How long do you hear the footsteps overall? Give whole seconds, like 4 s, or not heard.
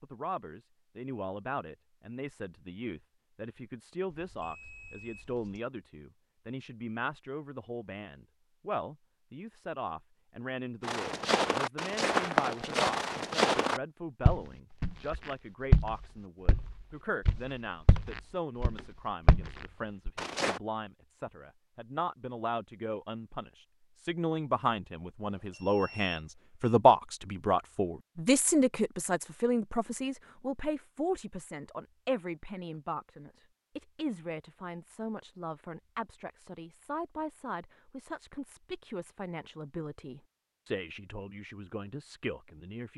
10 s.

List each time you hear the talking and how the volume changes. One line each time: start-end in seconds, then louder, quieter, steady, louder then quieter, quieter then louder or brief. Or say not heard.
0.0-42.9 louder then quieter.